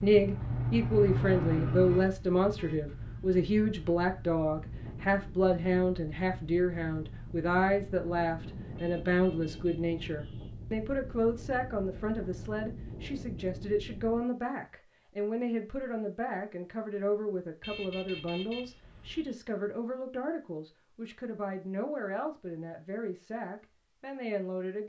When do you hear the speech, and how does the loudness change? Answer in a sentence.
The speech can be heard from 0.0 to 24.8 s, getting quieter.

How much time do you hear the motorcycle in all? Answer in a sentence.
You can hear the motorcycle for 2 seconds altogether.